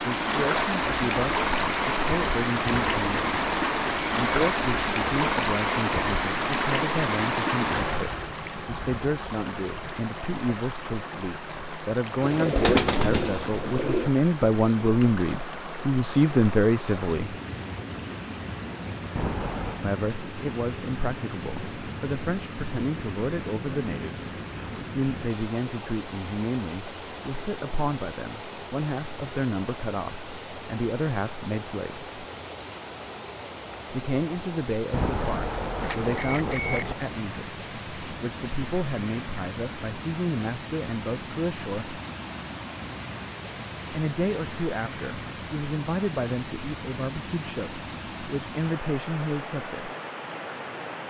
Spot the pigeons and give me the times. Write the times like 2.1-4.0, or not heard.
12.2-14.1.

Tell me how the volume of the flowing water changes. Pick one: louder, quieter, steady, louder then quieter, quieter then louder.
quieter.